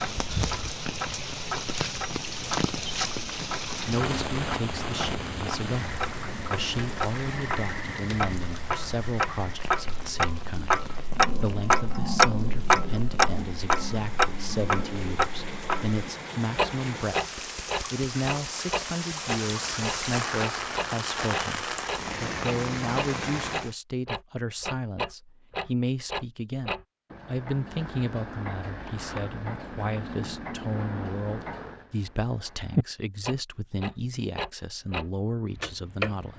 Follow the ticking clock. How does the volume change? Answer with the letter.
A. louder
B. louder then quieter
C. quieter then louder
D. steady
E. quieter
B.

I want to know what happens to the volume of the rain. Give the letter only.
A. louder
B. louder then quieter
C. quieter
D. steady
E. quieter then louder
E.